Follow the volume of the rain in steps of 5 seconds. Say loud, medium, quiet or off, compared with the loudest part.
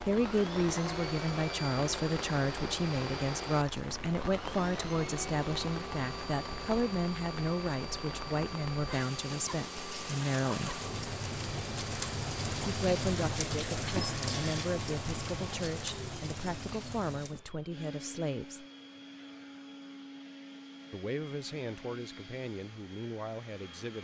medium, medium, loud, medium, off.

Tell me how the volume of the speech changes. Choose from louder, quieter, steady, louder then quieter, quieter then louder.
quieter.